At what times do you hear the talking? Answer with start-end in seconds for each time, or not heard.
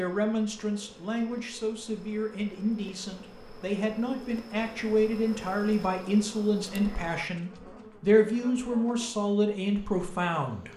0.0-10.7.